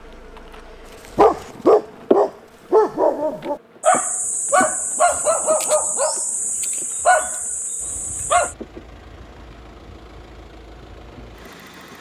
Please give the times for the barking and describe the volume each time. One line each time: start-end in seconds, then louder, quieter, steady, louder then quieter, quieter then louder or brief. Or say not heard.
1.1-8.6 quieter.